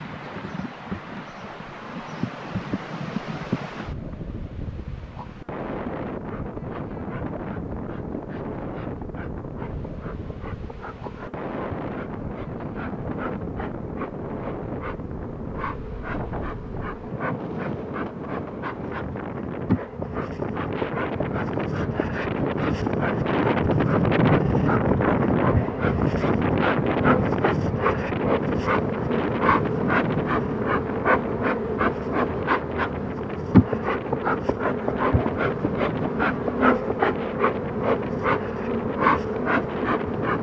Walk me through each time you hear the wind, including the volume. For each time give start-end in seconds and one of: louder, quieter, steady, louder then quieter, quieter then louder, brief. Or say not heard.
0.0-40.3 louder then quieter.